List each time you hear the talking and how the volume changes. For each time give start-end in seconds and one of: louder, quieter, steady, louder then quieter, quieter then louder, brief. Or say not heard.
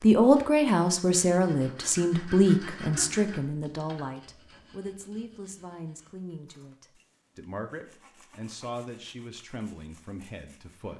0.0-10.9 quieter.